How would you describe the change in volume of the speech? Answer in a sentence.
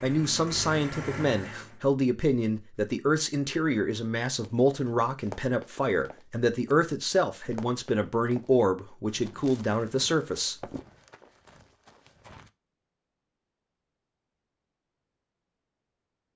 The loudness of the speech stays about the same.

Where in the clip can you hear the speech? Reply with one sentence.
The speech can be heard from 0.0 to 10.6 s.